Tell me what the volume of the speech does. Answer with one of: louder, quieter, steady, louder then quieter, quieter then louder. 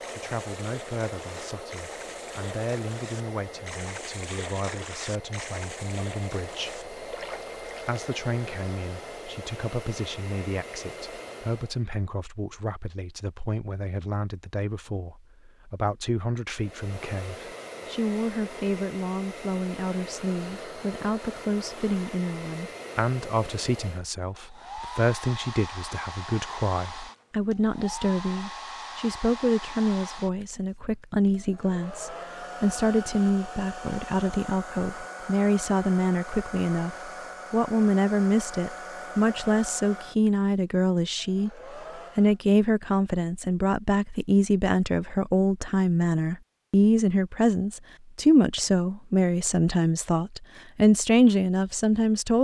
louder.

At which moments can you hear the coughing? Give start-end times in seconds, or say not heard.
not heard.